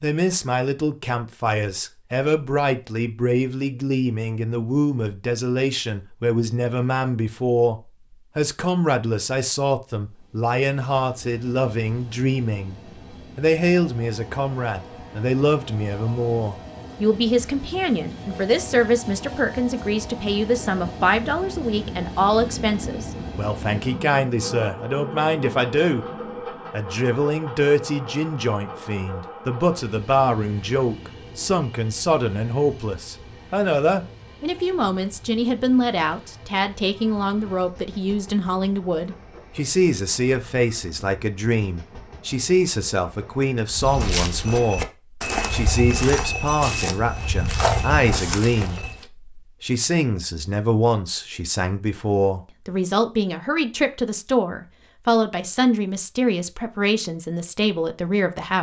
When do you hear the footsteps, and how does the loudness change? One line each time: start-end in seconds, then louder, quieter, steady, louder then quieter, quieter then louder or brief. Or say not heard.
43.7-49.0 steady.